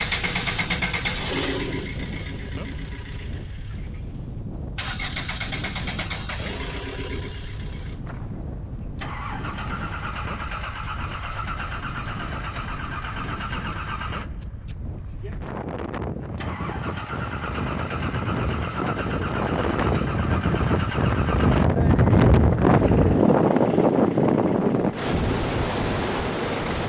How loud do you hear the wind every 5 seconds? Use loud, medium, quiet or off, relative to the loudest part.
quiet, quiet, quiet, medium, loud, medium.